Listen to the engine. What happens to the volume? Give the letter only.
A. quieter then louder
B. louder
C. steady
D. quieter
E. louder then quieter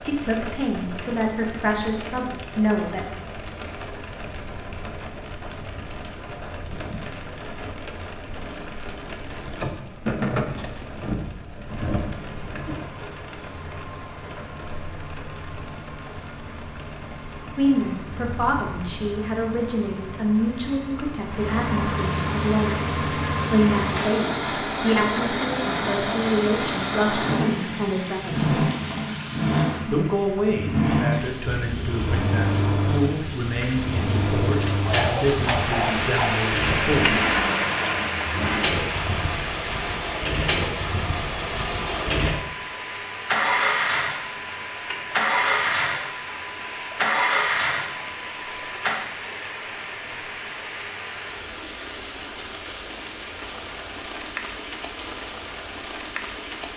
B.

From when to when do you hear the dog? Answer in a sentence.
You can hear the dog from 34.9 to 36.5 s.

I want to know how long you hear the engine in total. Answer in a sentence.
You can hear the engine for 37 seconds altogether.